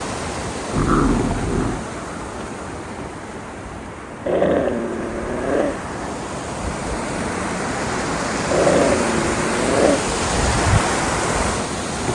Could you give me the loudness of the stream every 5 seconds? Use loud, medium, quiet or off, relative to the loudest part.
medium, loud, loud.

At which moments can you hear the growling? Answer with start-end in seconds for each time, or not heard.
0.7-1.8, 4.2-5.8, 8.5-10.0.